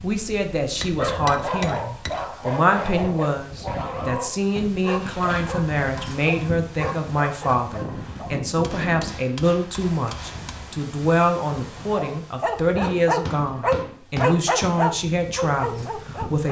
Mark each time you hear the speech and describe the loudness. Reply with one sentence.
The speech can be heard from 0.0 to 16.4 s, at a steady volume.